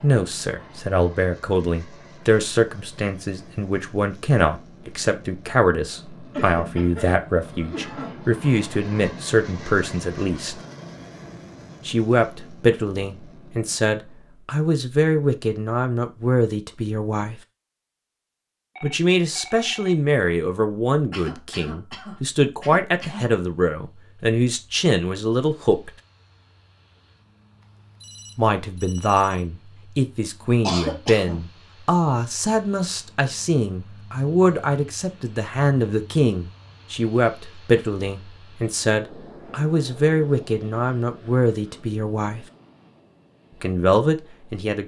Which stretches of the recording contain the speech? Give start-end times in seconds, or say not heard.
0.0-10.6, 11.8-17.4, 18.8-25.9, 28.4-42.5, 43.6-44.8.